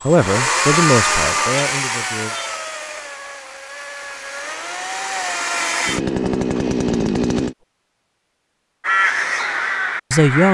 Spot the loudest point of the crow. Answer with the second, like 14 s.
9 s.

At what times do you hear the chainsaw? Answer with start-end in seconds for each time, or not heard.
0.0-7.5.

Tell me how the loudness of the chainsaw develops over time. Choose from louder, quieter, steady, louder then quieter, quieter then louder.
quieter then louder.